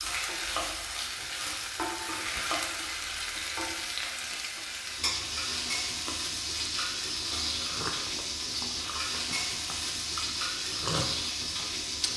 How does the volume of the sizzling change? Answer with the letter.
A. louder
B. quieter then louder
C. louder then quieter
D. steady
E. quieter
D.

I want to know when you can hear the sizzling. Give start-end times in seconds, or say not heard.
0.0-12.1.